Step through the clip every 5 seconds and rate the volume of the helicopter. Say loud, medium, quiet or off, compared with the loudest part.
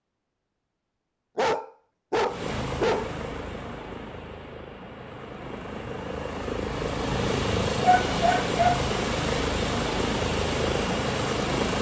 medium, loud, loud.